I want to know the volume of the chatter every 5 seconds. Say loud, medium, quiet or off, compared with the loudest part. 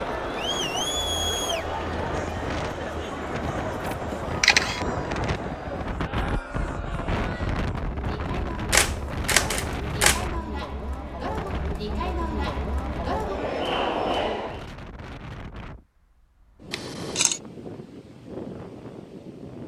loud, medium, loud, off.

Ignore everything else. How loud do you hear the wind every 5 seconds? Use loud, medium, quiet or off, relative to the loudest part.
loud, loud, medium, medium.